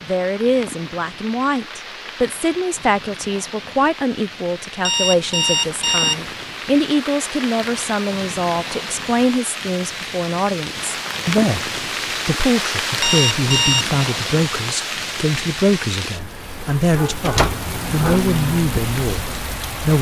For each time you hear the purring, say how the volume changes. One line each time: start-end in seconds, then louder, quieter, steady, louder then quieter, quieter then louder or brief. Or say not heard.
not heard.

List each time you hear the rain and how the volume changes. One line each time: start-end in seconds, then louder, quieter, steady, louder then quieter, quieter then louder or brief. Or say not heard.
0.0-19.9 louder.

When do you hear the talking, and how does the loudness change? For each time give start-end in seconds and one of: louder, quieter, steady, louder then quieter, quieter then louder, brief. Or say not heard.
0.0-19.9 steady.